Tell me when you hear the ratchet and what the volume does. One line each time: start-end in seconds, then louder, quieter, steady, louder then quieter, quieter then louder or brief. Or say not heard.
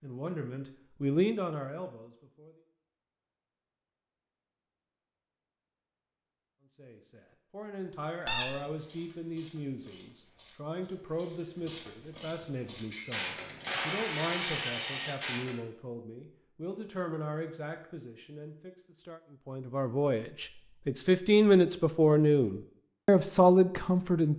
8.2-15.6 louder.